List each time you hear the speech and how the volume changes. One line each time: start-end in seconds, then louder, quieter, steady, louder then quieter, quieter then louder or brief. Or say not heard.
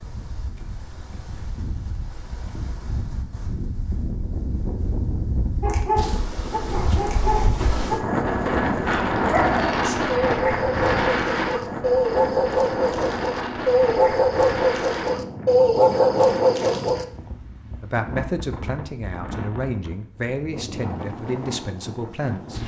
17.8-22.6 steady.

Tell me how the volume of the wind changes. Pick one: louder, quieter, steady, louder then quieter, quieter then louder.
louder then quieter.